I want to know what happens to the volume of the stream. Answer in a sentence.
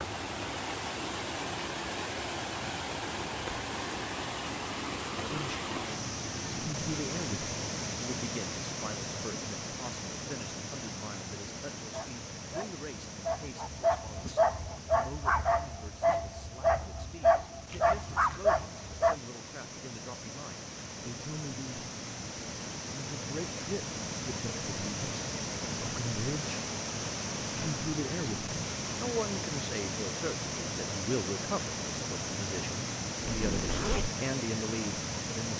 The loudness of the stream goes down, then up.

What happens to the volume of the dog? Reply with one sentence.
The loudness of the dog goes up.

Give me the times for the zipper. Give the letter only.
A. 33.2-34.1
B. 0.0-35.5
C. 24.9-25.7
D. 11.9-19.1
A.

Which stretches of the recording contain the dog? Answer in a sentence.
You can hear the dog from 11.9 to 19.1 s.